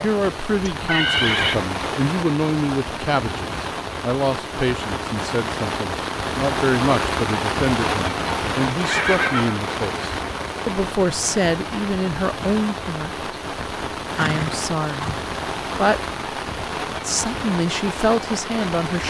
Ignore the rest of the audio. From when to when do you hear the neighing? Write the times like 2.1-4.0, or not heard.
0.7-1.6, 8.8-9.6, 14.2-15.2.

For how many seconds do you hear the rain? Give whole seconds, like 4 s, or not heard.
19 s.